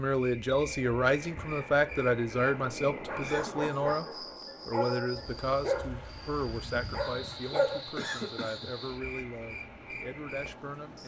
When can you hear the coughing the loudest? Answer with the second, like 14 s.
8 s.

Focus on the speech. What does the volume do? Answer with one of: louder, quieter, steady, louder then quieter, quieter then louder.
quieter.